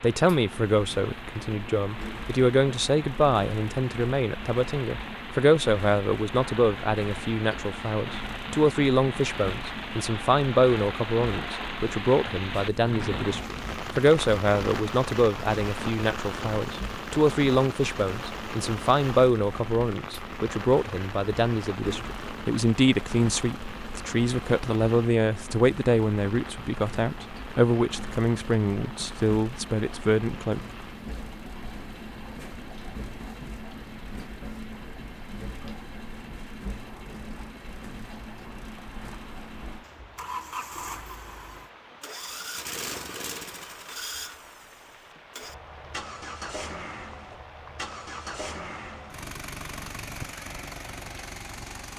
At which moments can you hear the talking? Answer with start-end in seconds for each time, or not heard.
0.0-30.6.